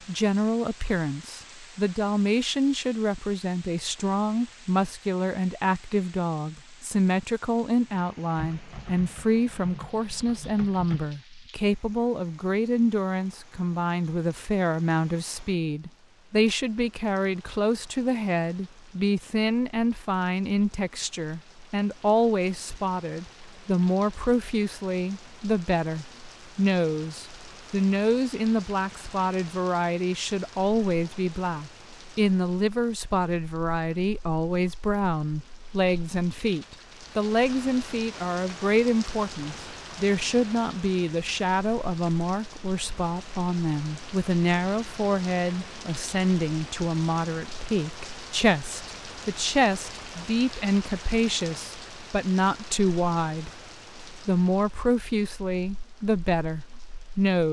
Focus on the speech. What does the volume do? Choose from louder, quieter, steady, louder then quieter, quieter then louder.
steady.